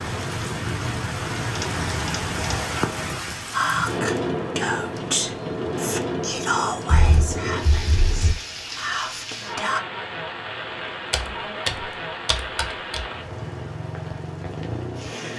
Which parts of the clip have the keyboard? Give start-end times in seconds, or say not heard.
1.6-2.9, 6.8-8.3, 11.1-13.1.